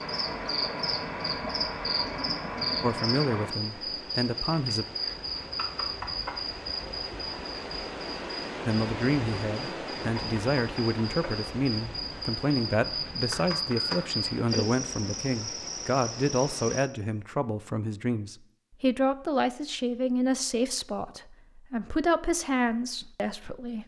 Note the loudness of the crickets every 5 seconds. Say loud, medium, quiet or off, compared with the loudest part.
loud, loud, loud, medium, off.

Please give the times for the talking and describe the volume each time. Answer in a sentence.
You can hear the talking briefly from 2.8 to 4.8 s; and from 8.7 to 23.8 s, at a steady volume.